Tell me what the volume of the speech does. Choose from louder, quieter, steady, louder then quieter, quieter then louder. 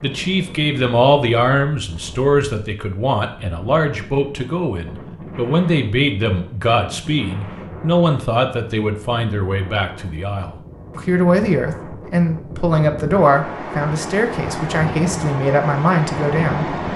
steady.